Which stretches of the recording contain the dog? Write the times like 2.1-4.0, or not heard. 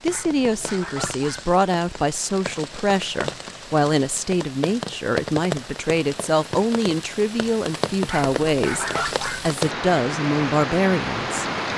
0.1-1.5, 8.1-9.5.